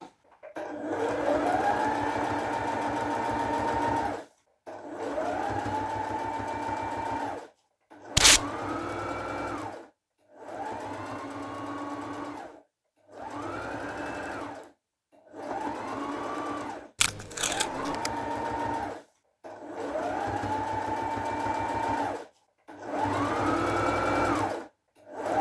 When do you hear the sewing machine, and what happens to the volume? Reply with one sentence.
You can hear the sewing machine from 0.0 to 25.3 s, getting quieter then louder.